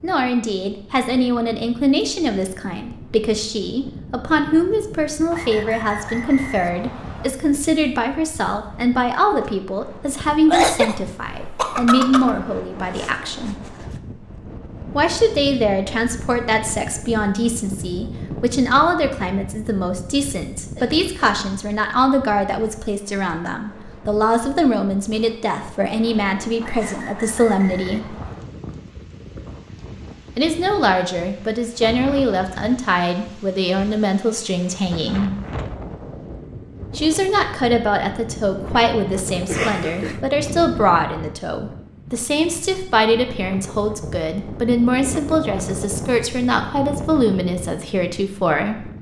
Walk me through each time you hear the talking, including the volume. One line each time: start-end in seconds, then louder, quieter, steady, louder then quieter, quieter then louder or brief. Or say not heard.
0.0-13.6 steady
14.9-28.1 steady
30.4-35.3 steady
37.0-48.9 steady.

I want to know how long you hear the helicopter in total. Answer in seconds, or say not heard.
not heard.